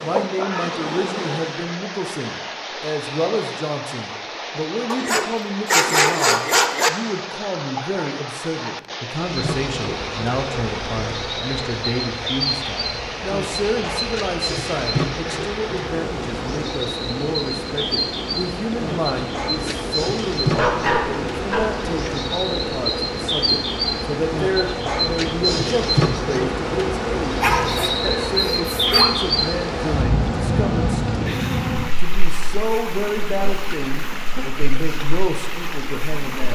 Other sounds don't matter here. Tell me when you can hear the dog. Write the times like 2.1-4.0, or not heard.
4.9-6.9, 20.5-22.1, 27.4-29.1.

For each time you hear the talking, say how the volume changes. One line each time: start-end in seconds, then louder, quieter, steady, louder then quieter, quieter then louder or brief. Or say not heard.
0.0-36.5 steady.